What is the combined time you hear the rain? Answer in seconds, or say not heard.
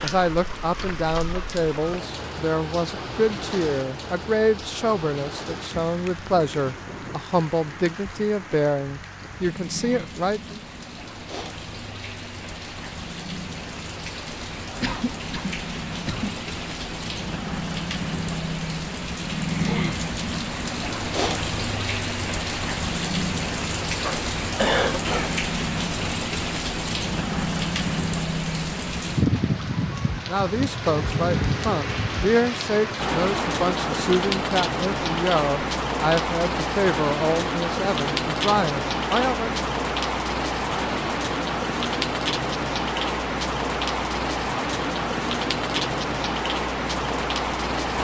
48 s.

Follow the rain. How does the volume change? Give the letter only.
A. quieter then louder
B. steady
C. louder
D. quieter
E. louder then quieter
C.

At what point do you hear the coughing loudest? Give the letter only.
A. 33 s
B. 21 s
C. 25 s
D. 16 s
C.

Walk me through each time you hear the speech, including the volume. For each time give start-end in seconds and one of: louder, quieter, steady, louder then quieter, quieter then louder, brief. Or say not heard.
0.0-10.6 steady
30.2-39.6 steady.